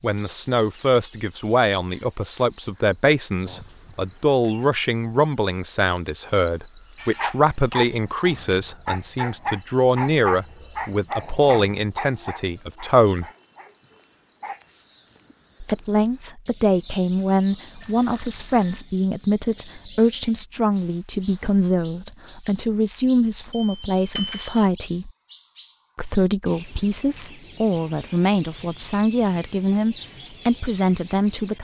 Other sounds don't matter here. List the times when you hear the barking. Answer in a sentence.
You can hear the barking from 7.0 to 14.6 s.